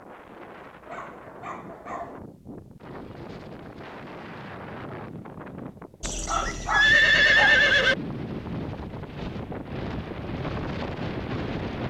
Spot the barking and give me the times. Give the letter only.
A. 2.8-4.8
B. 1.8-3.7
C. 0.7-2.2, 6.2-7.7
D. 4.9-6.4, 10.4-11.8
C.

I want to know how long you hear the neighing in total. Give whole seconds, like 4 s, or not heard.
2 s.